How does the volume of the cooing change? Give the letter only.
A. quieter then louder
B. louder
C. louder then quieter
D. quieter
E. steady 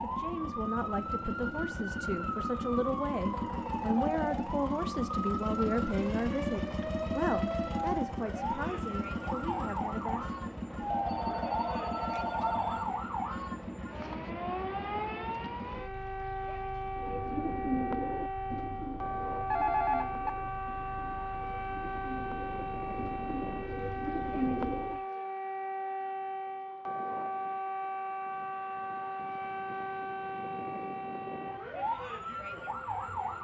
A.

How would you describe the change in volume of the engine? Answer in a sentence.
The loudness of the engine goes down.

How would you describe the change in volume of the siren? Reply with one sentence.
The loudness of the siren stays about the same.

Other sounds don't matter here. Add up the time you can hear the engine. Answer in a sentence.
The engine can be heard for 25 seconds in total.